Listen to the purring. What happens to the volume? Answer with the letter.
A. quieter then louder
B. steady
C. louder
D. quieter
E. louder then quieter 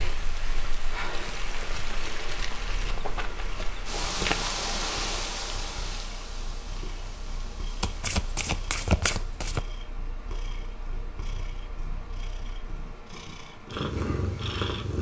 C.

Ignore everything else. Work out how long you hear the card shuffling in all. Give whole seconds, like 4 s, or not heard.
3 s.